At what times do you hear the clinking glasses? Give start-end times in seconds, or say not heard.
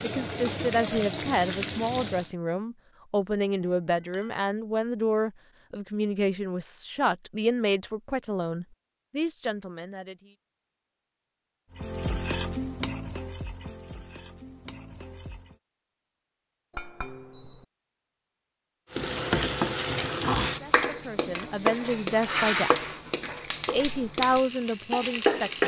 3.6-4.4, 16.7-17.6.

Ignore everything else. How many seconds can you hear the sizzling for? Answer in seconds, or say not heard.
13 s.